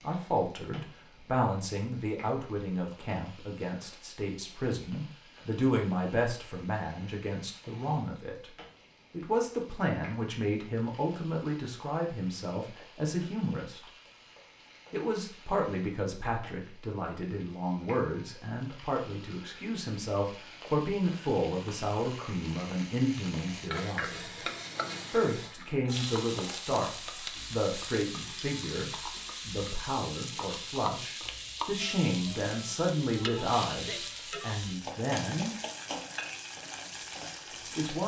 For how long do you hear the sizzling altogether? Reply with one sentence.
You can hear the sizzling for 38 seconds altogether.